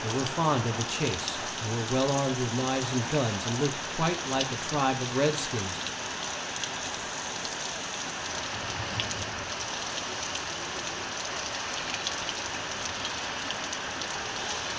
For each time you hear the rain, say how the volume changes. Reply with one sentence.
The rain can be heard from 0.0 to 14.7 s, at a steady volume.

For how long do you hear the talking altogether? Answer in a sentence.
You can hear the talking for 6 seconds altogether.